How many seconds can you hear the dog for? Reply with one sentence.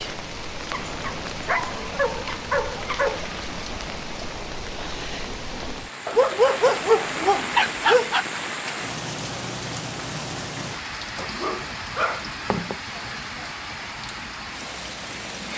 The dog can be heard for 6 seconds in total.